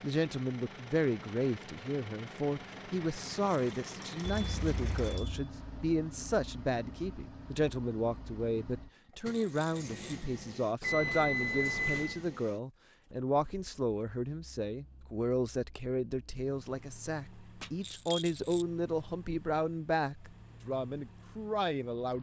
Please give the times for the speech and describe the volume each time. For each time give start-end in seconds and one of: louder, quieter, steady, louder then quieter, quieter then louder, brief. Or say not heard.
0.0-22.1 steady.